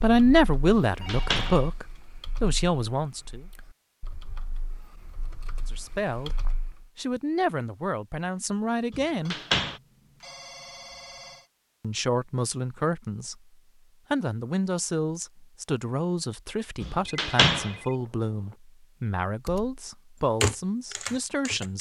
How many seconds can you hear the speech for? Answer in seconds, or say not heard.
17 s.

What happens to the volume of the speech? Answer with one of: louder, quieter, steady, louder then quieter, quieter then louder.
quieter.